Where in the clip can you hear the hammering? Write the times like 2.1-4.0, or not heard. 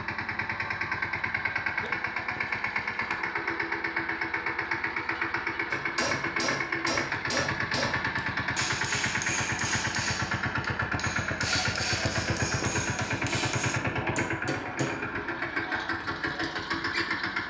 5.7-15.0.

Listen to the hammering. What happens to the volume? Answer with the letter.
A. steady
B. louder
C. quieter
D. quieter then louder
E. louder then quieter
A.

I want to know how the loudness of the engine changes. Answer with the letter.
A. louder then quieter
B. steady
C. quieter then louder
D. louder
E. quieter
B.